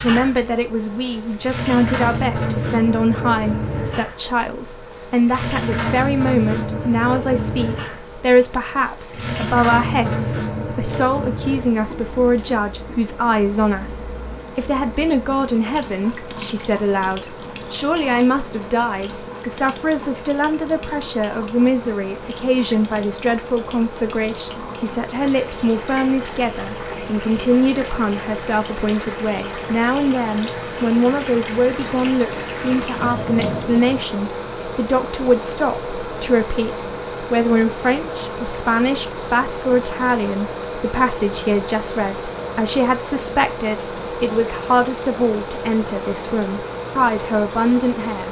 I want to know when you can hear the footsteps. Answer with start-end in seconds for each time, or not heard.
not heard.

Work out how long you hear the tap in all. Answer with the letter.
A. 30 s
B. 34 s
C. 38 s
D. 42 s
B.